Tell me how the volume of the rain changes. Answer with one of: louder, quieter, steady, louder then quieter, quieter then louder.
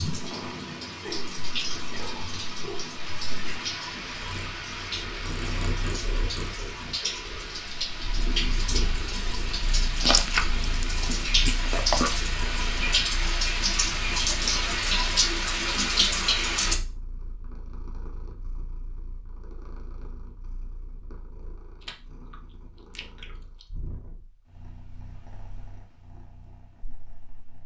louder.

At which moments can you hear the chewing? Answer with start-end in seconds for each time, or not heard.
9.9-12.2, 21.8-23.6.